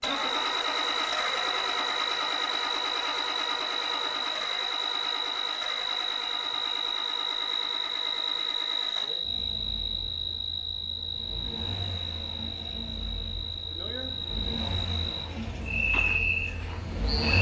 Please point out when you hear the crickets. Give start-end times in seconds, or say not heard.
0.0-17.3.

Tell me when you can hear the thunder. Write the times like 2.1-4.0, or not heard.
not heard.